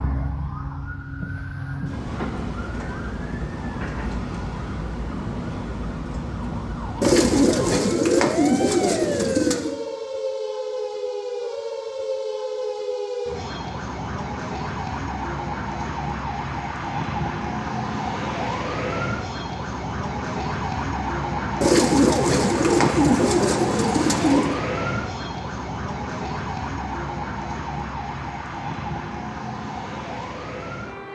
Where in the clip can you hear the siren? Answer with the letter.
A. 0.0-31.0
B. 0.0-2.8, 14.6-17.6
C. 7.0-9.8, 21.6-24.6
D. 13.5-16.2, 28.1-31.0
A.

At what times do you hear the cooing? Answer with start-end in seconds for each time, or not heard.
7.0-9.8, 21.6-24.6.